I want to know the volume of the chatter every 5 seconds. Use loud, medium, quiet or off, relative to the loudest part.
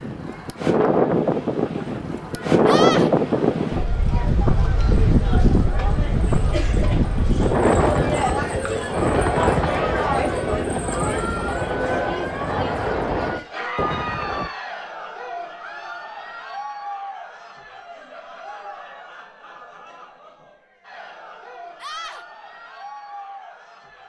medium, loud, loud, medium, quiet.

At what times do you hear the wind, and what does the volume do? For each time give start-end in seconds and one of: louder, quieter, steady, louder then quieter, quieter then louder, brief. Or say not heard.
0.0-14.5 quieter.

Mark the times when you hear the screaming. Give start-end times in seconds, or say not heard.
2.6-3.1, 21.8-22.2.